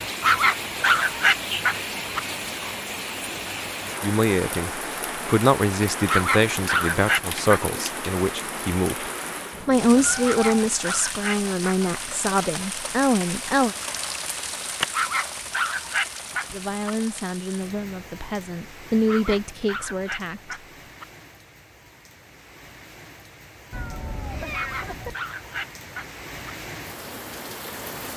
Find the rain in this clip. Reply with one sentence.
The rain can be heard from 0.0 to 28.1 s.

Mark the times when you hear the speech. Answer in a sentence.
You can hear the speech from 4.0 to 13.8 s and from 16.5 to 20.6 s.